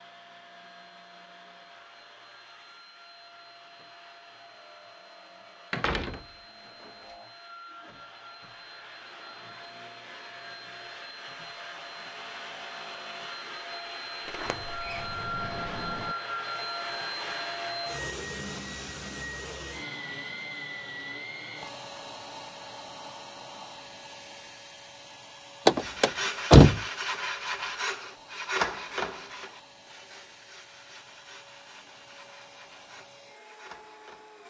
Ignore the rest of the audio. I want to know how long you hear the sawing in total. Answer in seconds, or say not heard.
9 s.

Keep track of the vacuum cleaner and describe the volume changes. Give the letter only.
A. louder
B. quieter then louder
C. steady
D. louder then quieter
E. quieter
D.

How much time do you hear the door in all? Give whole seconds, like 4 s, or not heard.
4 s.